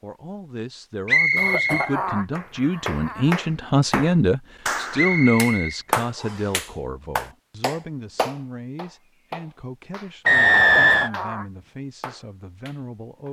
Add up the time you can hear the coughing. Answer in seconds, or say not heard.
3 s.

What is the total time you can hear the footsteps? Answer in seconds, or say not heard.
not heard.